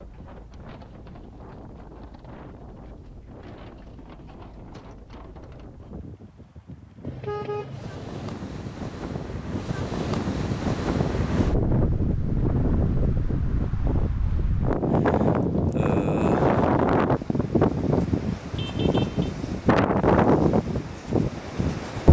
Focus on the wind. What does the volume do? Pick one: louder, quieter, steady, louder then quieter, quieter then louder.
louder.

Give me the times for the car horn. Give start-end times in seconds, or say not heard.
7.0-8.2, 18.6-19.3.